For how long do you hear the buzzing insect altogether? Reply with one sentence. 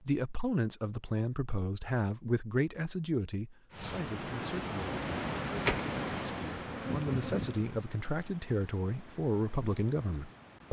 The buzzing insect can be heard for 3 seconds in total.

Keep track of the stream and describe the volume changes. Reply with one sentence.
The volume of the stream goes down.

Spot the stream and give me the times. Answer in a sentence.
You can hear the stream from 3.7 to 10.6 s.